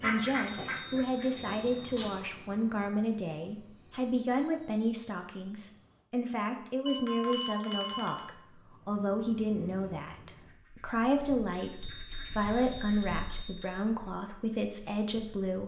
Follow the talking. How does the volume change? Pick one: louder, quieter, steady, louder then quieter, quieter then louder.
steady.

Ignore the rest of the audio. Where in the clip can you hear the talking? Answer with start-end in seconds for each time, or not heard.
0.0-15.6.